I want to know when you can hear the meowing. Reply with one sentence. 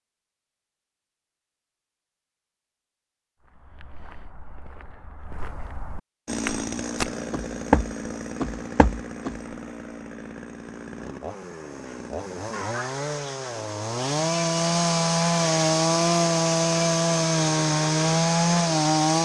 The meowing can't be heard in this clip.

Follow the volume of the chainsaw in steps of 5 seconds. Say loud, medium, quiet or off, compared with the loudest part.
off, quiet, medium, loud.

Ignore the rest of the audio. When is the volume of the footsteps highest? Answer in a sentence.
The volume of the footsteps peaks at 8 seconds.